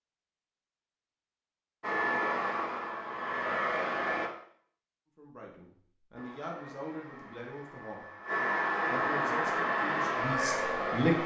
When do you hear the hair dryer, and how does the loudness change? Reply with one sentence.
You can hear the hair dryer briefly from 1.8 to 4.3 s; and from 6.2 to 11.2 s, getting louder.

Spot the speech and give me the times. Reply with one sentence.
You can hear the speech from 5.2 to 8.1 s and from 8.8 to 11.2 s.